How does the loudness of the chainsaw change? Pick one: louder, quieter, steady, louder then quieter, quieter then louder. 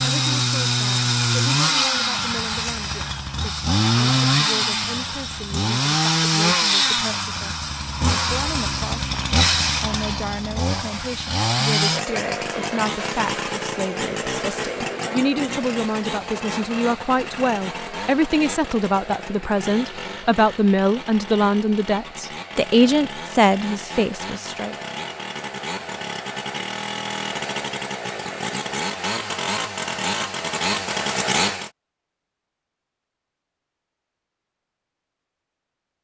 quieter then louder.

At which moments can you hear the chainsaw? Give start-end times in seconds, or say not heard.
0.0-31.7.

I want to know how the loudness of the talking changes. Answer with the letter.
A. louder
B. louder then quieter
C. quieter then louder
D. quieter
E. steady
A.